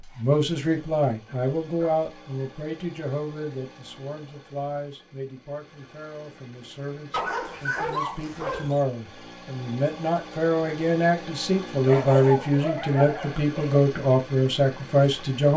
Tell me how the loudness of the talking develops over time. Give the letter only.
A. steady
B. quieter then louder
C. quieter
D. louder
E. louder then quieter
B.